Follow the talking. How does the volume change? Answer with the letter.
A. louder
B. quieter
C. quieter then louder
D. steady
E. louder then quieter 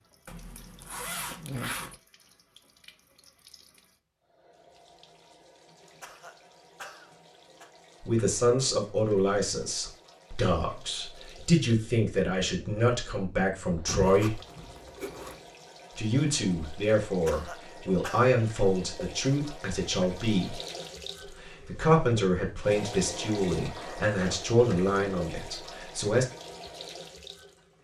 D.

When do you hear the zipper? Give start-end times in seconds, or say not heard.
0.2-1.9, 13.8-15.4, 23.7-24.4.